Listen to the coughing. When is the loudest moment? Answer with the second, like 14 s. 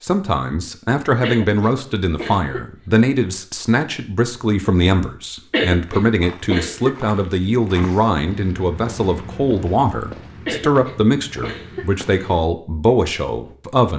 6 s.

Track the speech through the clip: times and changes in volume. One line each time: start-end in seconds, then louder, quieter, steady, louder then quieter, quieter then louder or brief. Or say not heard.
0.0-13.9 steady.